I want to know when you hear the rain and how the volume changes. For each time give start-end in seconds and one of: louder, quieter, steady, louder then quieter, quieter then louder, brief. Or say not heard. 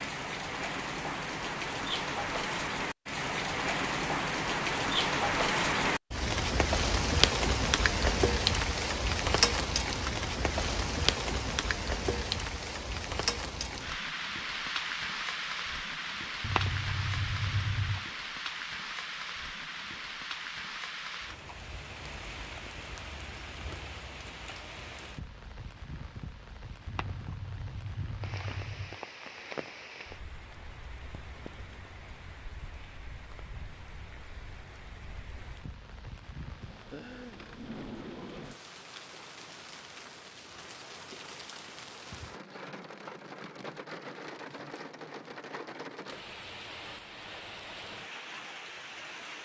0.0-49.4 quieter.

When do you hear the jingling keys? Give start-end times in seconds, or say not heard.
16.4-18.1, 26.9-29.0.